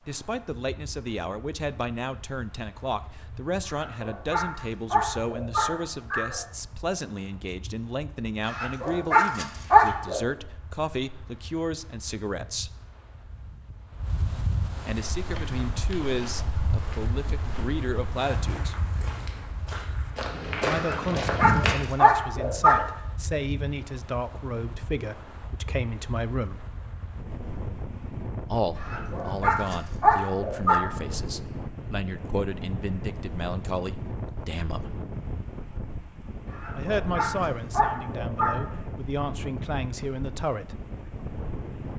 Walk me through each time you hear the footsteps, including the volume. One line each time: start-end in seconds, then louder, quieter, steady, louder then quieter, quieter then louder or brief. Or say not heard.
15.2-21.9 louder.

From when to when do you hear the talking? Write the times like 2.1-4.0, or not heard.
0.1-12.8, 14.8-18.8, 20.6-26.6, 28.5-35.0, 36.8-40.8.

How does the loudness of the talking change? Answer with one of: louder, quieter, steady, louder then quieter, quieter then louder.
steady.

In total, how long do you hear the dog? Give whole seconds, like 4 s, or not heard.
11 s.